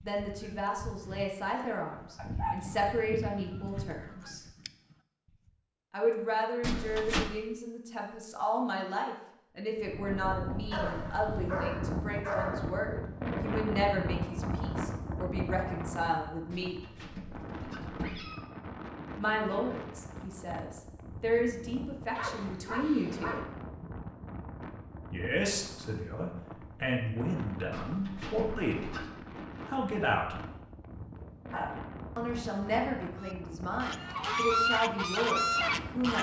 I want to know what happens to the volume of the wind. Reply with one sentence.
The loudness of the wind goes down.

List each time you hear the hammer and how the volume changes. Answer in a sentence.
You can't hear the hammer here.